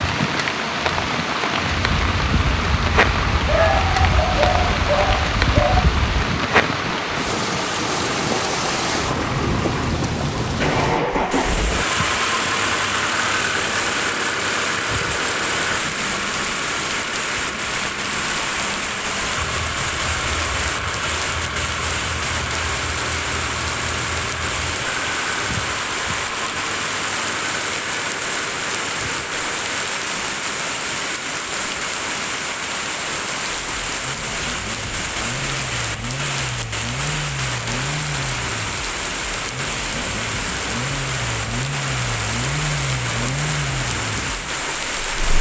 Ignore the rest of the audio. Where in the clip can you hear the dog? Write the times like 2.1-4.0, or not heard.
3.5-5.9.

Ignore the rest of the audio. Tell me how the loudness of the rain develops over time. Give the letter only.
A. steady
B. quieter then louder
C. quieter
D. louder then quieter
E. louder
A.